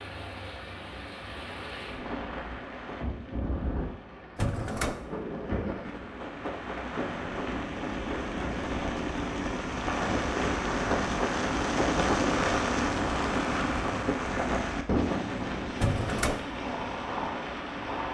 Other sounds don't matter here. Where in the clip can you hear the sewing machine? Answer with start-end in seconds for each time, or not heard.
not heard.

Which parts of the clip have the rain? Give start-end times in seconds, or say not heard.
0.0-18.1.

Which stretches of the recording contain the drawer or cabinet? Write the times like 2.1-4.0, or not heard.
4.3-5.0, 15.8-16.4.